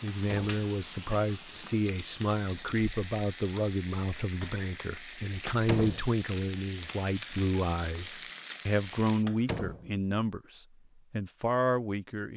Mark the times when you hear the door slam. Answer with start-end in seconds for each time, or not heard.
0.1-0.6, 5.5-6.1, 9.2-9.9.